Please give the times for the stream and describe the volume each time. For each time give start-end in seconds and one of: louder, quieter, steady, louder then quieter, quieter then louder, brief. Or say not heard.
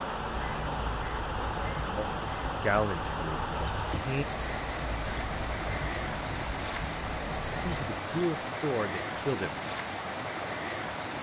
0.0-11.1 steady.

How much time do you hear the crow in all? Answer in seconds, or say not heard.
8 s.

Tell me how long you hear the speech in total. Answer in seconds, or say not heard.
4 s.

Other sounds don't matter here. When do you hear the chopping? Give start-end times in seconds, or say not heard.
not heard.